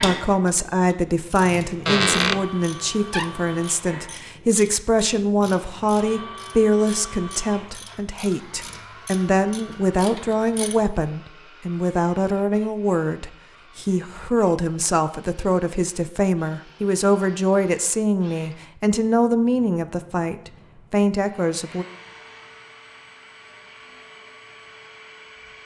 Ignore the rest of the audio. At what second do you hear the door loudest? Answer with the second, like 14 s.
2 s.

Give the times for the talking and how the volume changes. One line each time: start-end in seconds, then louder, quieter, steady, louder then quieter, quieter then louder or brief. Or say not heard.
0.0-21.9 steady.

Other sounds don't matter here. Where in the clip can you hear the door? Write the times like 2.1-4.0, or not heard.
1.9-3.5.